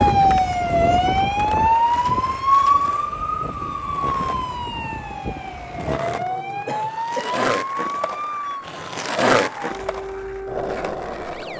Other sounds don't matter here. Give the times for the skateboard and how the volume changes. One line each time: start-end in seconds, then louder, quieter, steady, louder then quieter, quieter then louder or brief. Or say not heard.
0.0-11.5 louder.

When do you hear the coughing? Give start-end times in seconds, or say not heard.
6.7-7.5.